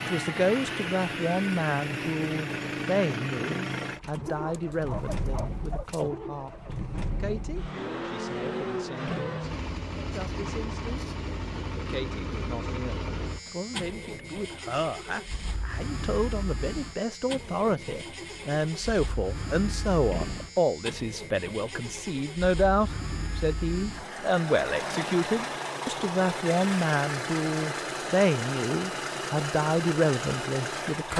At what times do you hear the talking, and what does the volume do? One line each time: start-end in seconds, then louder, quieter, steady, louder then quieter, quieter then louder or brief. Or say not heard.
0.0-11.0 quieter
11.8-31.1 louder.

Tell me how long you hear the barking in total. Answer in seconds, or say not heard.
2 s.